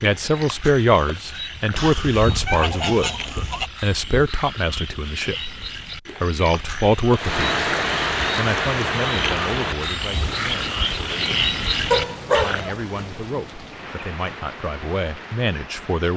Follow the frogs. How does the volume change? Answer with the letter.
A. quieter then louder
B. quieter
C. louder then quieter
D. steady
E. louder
E.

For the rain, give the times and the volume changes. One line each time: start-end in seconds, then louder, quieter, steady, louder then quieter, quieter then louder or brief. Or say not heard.
7.2-16.1 quieter.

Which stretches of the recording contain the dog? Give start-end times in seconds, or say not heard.
11.9-13.2.